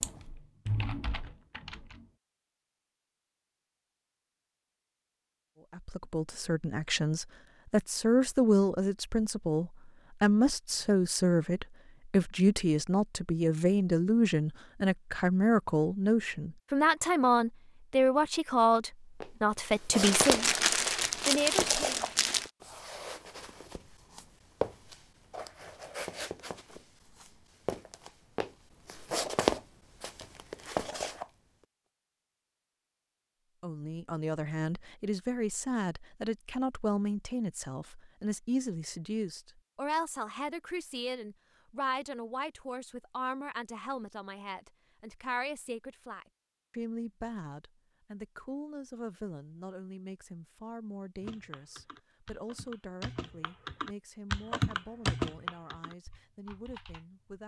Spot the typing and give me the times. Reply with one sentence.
The typing can be heard from 0.0 to 2.1 s and from 51.2 to 57.4 s.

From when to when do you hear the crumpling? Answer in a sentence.
You can hear the crumpling from 20.0 to 22.5 s.